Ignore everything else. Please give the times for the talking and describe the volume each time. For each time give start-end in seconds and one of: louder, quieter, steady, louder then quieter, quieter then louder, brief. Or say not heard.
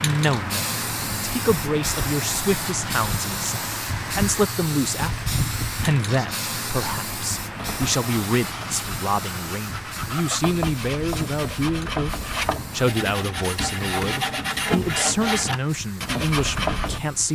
0.0-17.3 steady.